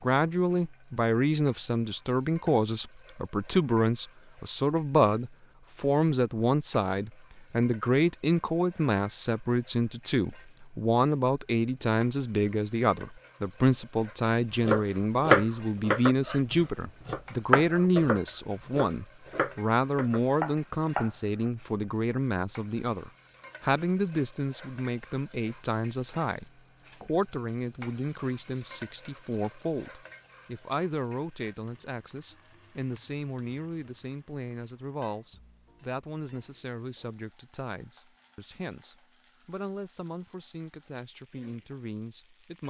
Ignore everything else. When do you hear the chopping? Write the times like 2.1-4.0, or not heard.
14.7-21.1.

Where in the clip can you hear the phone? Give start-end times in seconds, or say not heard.
not heard.